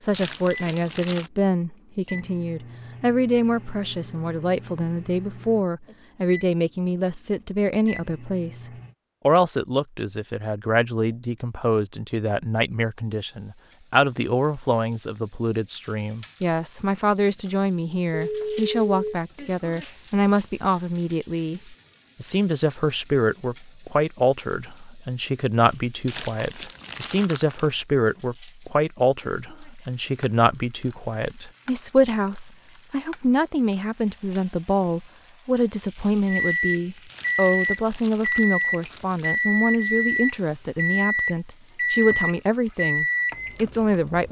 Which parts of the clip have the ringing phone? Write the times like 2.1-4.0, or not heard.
18.1-19.1.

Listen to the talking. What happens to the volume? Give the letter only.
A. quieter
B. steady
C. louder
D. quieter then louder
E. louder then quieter
B.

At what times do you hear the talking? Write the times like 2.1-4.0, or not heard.
0.0-8.7, 9.2-44.2.